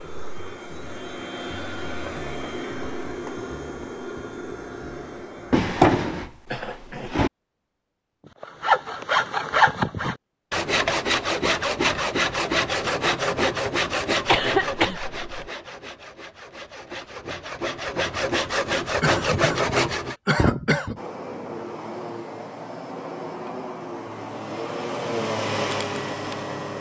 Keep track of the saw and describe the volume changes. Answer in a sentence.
The loudness of the saw goes down, then up.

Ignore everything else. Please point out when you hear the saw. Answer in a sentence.
You can hear the saw from 8.4 to 20.1 s.